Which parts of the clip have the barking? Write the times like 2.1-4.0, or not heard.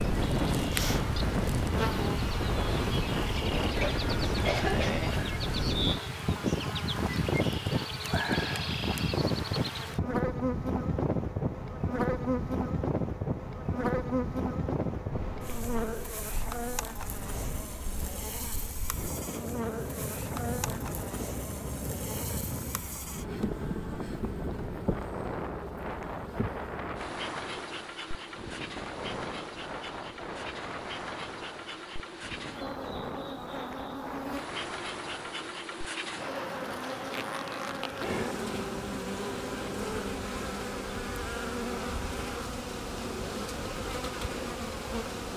not heard.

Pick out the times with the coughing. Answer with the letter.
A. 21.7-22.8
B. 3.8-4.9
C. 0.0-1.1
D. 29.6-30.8
B.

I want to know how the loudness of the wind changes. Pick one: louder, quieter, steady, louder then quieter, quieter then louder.
quieter.